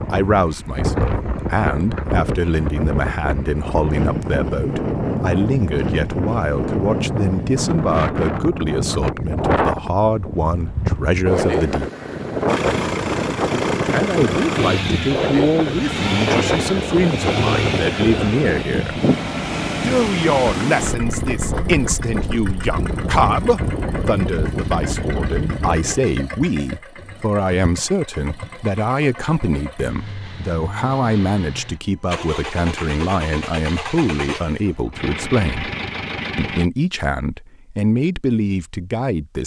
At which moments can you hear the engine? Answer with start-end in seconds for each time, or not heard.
12.4-36.7.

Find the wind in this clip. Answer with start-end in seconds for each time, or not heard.
0.0-26.0.